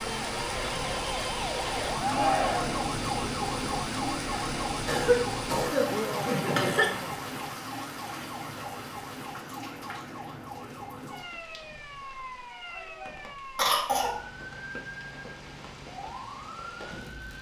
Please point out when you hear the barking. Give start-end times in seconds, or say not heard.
not heard.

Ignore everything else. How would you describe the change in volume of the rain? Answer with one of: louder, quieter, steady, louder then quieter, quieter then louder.
quieter.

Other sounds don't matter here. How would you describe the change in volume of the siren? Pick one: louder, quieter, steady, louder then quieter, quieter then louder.
quieter.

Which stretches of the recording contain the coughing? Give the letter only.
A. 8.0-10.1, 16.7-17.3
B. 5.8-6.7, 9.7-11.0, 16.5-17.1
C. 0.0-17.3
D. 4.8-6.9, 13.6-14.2
D.